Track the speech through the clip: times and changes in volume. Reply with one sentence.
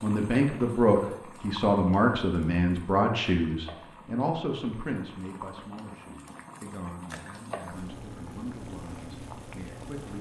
You can hear the speech from 0.0 to 10.1 s, getting quieter.